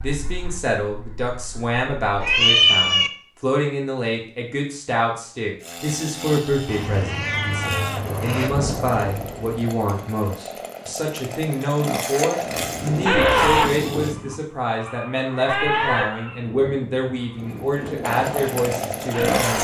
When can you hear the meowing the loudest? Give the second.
3 s.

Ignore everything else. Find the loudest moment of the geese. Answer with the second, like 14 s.
13 s.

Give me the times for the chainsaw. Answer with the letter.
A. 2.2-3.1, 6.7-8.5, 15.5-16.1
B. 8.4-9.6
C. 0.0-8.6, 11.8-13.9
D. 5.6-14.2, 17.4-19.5
D.